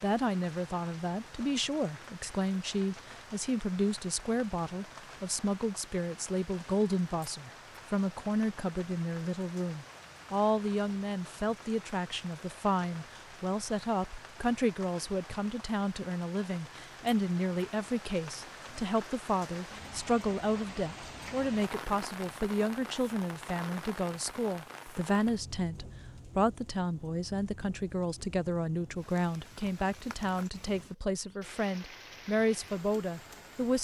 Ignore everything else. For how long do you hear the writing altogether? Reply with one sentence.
The writing can't be heard in this clip.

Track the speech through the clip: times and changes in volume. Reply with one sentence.
The speech can be heard from 0.0 to 33.7 s, at a steady volume.